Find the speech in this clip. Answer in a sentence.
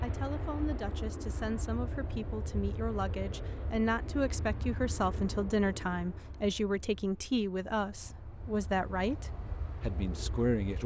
The speech can be heard from 0.0 to 10.8 s.